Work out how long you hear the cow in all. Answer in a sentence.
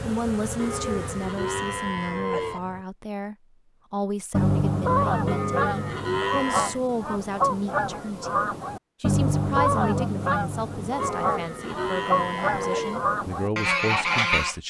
The cow can be heard for 6 seconds in total.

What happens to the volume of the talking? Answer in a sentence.
The volume of the talking stays about the same.